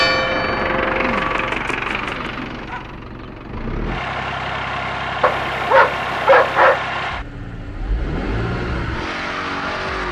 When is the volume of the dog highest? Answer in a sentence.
The volume of the dog peaks at 6 seconds.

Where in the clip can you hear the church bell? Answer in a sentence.
You can hear the church bell from 0.0 to 1.6 s.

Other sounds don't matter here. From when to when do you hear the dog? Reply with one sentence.
The dog can be heard from 1.1 to 3.0 s and from 5.2 to 6.8 s.